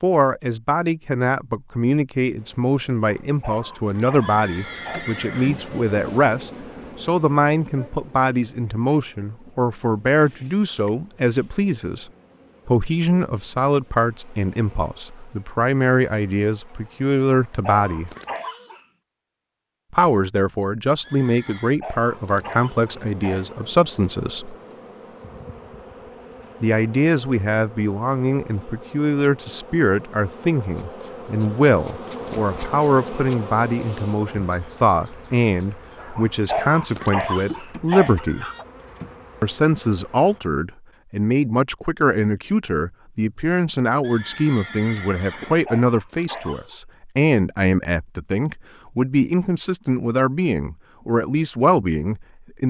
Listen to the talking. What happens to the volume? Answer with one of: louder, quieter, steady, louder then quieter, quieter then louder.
steady.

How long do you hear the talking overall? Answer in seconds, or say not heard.
48 s.